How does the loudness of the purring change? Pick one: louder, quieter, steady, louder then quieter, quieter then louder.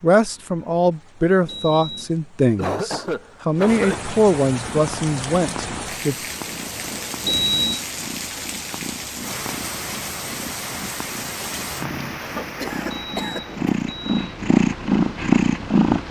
louder.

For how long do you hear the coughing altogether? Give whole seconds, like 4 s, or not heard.
3 s.